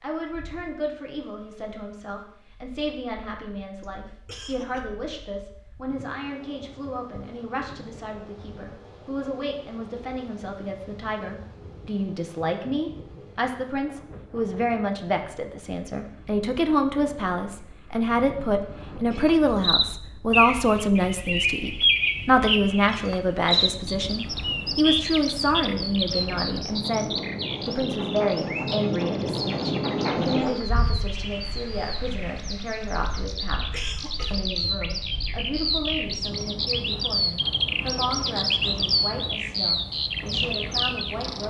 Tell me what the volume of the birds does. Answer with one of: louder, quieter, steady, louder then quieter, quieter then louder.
quieter then louder.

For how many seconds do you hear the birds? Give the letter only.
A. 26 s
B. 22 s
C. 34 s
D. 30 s
B.